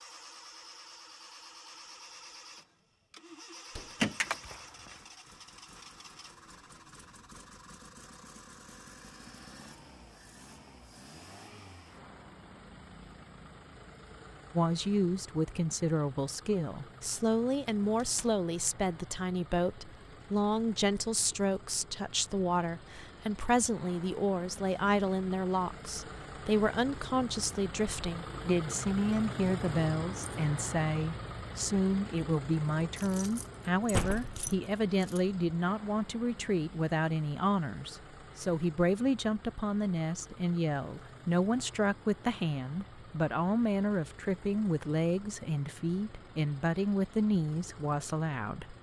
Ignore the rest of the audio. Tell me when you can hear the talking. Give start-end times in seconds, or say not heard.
14.6-48.7.